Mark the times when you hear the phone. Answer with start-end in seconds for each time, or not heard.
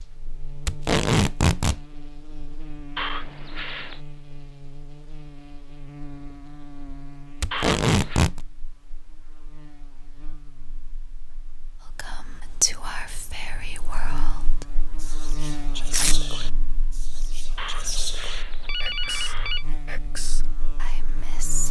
3.0-4.0, 7.5-8.2, 17.6-19.6.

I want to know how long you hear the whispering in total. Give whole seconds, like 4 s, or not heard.
10 s.